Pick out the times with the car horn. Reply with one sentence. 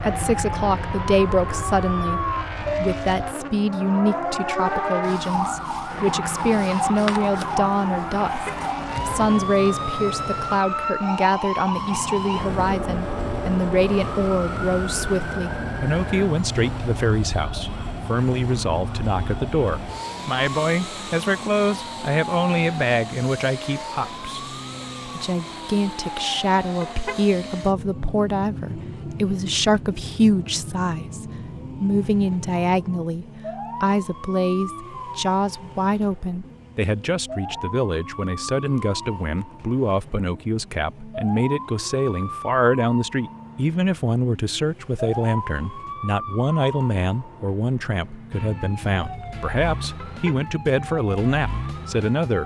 The car horn can be heard from 8.2 to 8.7 s, from 26.8 to 27.2 s and from 50.0 to 50.5 s.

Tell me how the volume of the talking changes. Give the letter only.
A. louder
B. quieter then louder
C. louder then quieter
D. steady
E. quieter
D.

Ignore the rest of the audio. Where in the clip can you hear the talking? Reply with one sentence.
You can hear the talking from 0.0 to 24.4 s and from 25.1 to 52.4 s.